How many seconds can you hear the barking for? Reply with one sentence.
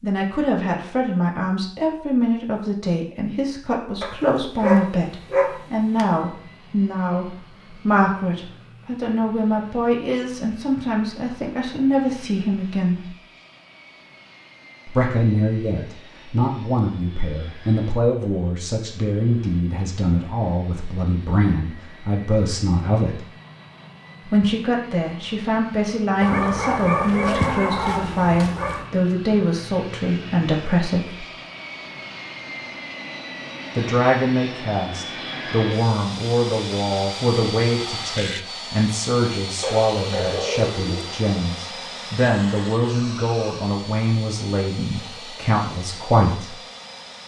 You can hear the barking for 6 seconds altogether.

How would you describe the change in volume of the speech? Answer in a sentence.
The loudness of the speech stays about the same.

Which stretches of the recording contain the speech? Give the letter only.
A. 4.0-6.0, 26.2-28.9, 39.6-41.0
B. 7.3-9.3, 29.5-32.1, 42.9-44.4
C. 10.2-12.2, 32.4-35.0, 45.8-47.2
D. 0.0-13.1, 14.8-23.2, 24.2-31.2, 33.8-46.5
D.